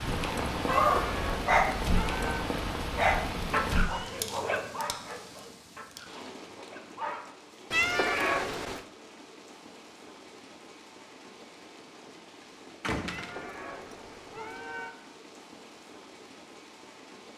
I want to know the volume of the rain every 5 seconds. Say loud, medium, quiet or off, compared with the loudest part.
loud, quiet, quiet, quiet.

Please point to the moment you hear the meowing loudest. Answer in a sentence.
The volume of the meowing peaks at 8 seconds.